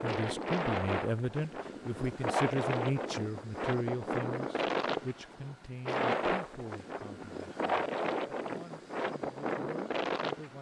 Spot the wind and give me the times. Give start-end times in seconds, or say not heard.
0.0-10.5.